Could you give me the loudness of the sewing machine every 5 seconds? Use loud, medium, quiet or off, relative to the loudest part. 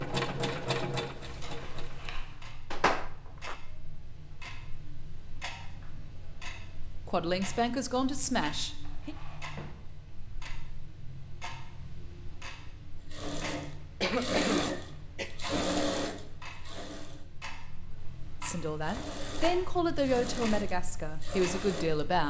loud, off, loud, loud, medium.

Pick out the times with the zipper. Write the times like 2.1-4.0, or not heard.
2.7-3.5.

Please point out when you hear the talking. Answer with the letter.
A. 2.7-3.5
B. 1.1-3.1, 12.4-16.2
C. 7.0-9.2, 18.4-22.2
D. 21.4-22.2
C.